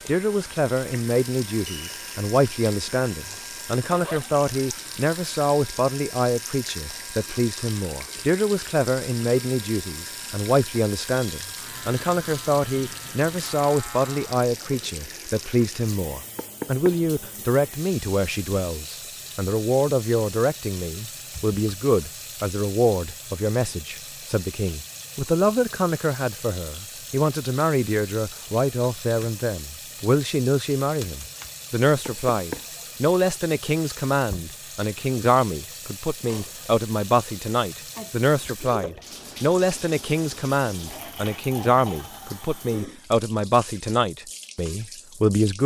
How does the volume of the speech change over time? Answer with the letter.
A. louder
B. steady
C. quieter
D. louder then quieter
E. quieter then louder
B.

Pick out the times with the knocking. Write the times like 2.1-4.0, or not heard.
16.4-17.0, 32.0-32.7.